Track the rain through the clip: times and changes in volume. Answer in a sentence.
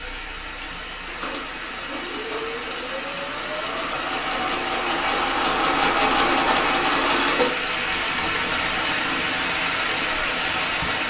The rain can be heard from 0.0 to 11.0 s, getting louder.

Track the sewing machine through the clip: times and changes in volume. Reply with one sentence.
You can hear the sewing machine from 0.0 to 11.0 s, getting louder then quieter.